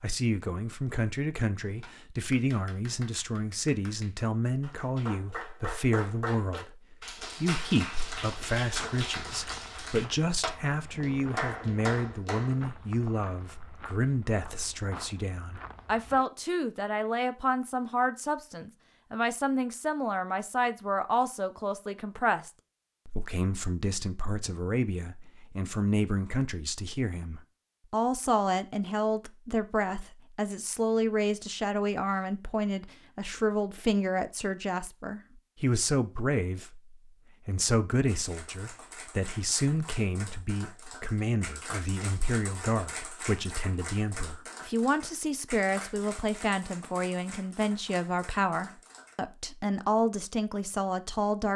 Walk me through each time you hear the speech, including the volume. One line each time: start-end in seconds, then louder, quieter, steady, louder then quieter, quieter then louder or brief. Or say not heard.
0.0-51.5 steady.